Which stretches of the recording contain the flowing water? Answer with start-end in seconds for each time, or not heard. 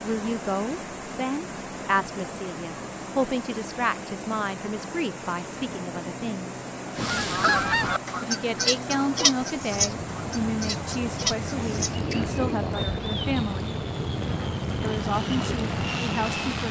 0.0-16.6.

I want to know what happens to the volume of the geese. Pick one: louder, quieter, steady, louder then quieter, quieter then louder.
quieter then louder.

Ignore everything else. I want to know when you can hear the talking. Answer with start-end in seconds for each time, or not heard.
0.0-6.5, 8.2-13.8, 14.8-16.6.